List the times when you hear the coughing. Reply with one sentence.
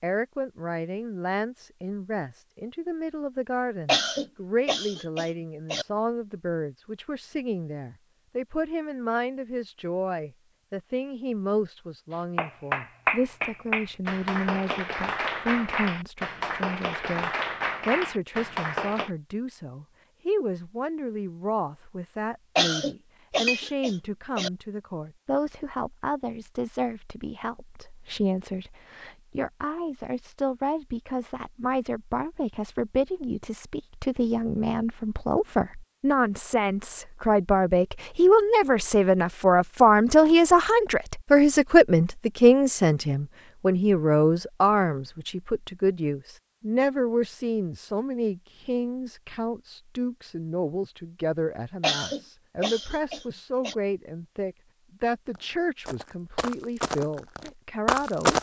The coughing can be heard from 3.9 to 5.8 s, from 22.6 to 24.5 s and from 51.8 to 53.8 s.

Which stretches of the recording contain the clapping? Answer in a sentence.
The clapping can be heard from 12.1 to 19.1 s.